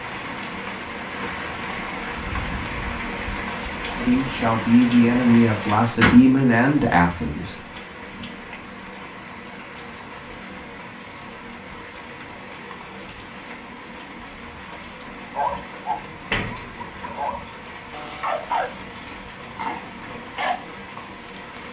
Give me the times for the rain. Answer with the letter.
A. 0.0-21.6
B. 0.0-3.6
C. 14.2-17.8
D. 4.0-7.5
A.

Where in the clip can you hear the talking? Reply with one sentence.
The talking can be heard from 4.0 to 7.5 s.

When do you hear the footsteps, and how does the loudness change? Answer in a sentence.
You can't hear the footsteps here.